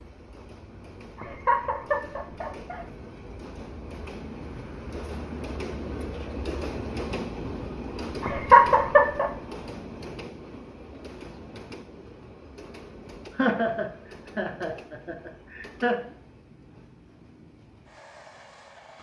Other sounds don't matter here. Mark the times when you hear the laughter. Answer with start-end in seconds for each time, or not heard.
1.1-2.9, 8.2-9.3, 13.3-16.0.